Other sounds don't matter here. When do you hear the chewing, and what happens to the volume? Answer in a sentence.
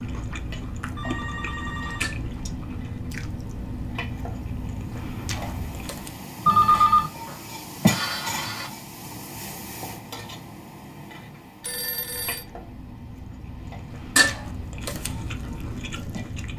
You can hear the chewing from 0.0 to 6.2 s, at a steady volume; and from 11.9 to 16.5 s, getting louder.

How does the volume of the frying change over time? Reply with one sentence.
The volume of the frying goes up, then down.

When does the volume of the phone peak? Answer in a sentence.
The volume of the phone peaks at 7 seconds.